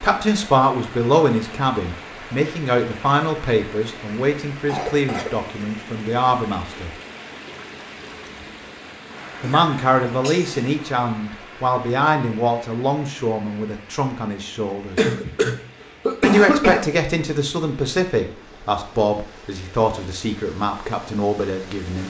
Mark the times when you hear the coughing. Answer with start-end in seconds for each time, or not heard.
4.7-5.3, 9.4-10.8, 14.9-16.9.